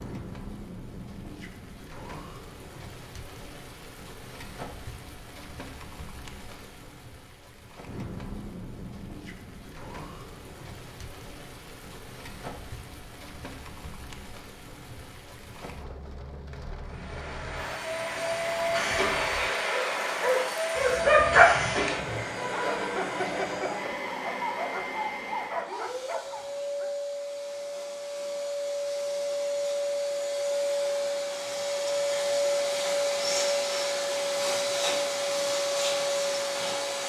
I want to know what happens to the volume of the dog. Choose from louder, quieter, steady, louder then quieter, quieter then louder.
quieter.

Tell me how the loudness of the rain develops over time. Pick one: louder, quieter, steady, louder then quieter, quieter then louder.
steady.